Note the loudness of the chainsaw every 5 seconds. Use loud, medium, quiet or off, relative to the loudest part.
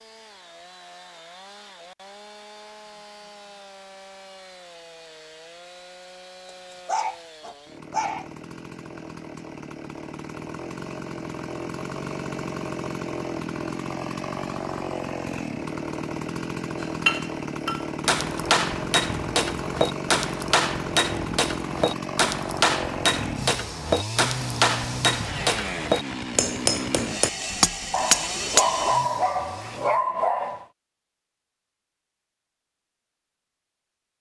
quiet, medium, loud, loud, loud, loud, off.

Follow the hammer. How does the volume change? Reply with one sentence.
The loudness of the hammer stays about the same.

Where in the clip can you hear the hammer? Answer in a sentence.
The hammer can be heard from 16.8 to 28.6 s.